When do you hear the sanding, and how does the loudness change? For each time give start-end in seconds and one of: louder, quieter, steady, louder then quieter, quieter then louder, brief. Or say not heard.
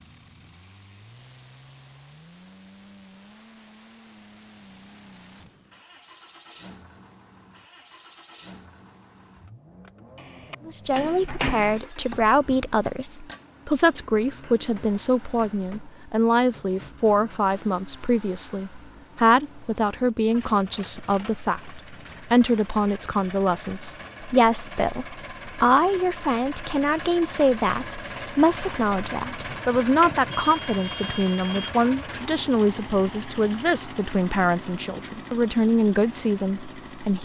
not heard.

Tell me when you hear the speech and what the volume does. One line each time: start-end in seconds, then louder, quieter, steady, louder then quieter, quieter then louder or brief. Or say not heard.
10.7-37.2 steady.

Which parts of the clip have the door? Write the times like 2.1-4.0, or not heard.
not heard.